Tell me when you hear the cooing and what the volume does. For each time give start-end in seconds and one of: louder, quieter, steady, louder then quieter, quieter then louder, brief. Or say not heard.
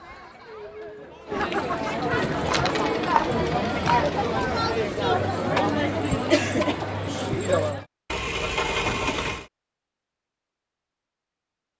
not heard.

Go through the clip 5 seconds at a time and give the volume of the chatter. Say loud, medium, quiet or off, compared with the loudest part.
loud, loud, off.